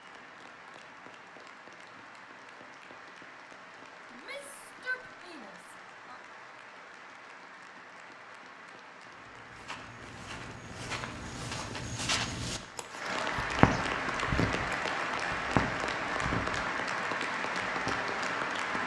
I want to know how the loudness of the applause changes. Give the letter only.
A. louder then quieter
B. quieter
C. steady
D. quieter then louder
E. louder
E.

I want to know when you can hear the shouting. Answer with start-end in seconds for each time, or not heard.
4.1-6.2.